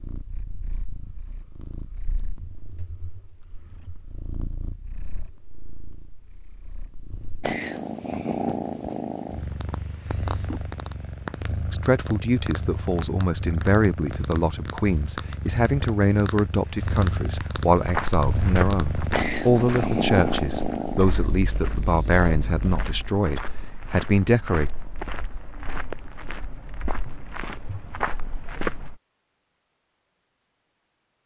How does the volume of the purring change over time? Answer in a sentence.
The volume of the purring goes up.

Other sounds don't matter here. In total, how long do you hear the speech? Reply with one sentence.
You can hear the speech for 13 seconds altogether.